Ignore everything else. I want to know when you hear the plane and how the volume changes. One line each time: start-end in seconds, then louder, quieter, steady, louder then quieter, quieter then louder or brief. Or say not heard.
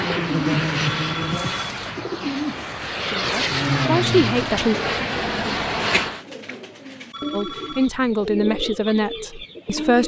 0.0-6.2 quieter then louder.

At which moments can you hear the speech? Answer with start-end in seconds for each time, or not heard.
3.1-4.8, 7.3-10.0.